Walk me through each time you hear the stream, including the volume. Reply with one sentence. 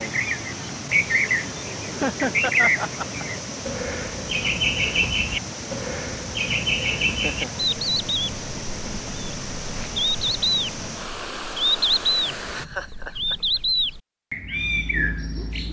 You can hear the stream from 0.0 to 12.7 s, at a steady volume.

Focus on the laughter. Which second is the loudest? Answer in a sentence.
The volume of the laughter peaks at 2 seconds.